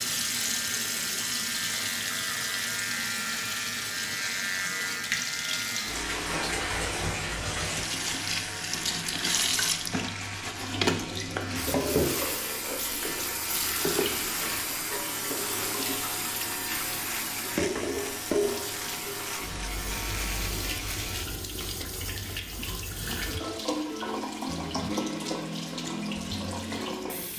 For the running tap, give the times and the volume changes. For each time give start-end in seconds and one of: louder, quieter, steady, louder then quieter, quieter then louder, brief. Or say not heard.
0.0-27.3 steady.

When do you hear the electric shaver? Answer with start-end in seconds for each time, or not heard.
0.0-21.3.